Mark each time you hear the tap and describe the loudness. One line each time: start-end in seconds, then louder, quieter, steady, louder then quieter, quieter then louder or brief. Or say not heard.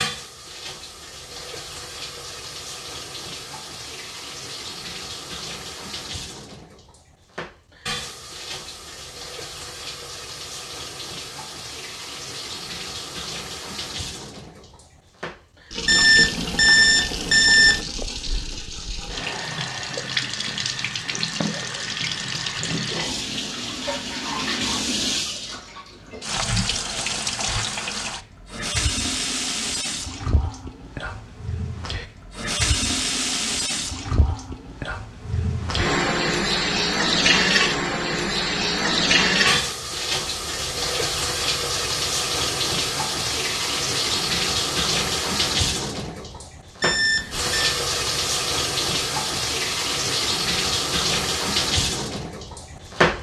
0.0-53.1 louder.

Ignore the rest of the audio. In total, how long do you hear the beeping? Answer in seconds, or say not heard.
3 s.